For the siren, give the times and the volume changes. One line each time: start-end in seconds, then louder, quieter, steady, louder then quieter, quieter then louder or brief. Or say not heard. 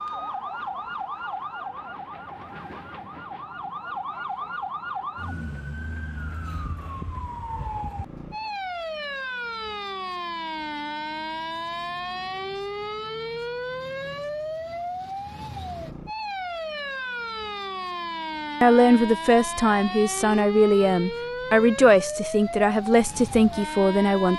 0.0-24.3 steady.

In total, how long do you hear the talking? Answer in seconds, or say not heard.
6 s.